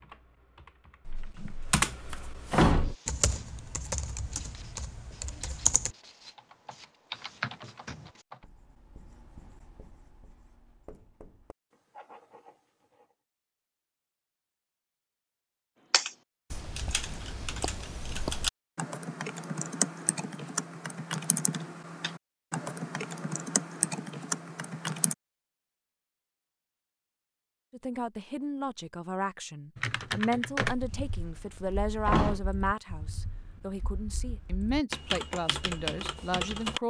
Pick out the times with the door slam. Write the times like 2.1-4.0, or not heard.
1.1-3.0, 30.6-32.5.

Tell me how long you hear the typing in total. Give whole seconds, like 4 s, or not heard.
25 s.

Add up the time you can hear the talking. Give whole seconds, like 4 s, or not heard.
9 s.